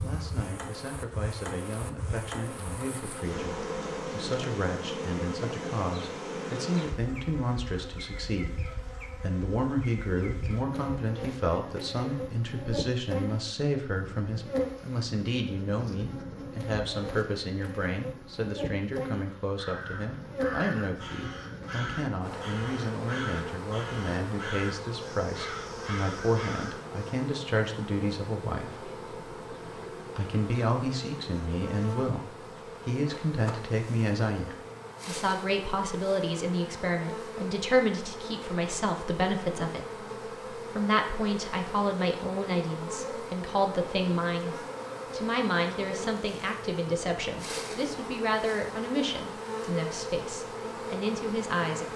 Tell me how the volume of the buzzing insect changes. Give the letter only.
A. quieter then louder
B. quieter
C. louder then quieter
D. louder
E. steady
E.